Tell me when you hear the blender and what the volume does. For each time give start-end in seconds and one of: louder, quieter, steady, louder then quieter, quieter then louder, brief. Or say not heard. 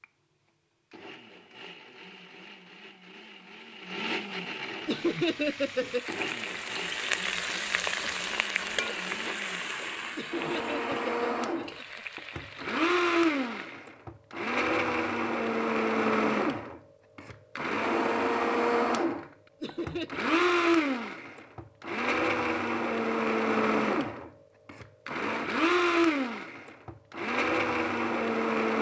0.0-28.7 louder.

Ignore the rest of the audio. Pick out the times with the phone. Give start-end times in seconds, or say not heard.
not heard.